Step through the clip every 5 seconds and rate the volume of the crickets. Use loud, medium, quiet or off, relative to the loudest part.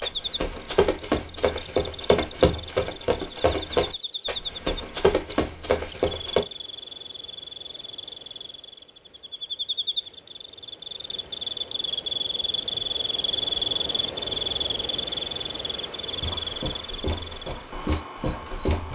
medium, medium, loud, loud.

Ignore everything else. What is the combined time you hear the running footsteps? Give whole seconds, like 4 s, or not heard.
9 s.